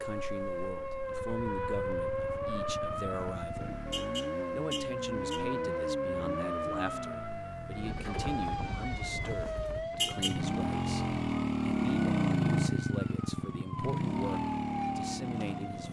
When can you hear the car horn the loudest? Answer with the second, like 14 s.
10 s.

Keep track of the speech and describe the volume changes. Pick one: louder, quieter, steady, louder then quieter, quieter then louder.
steady.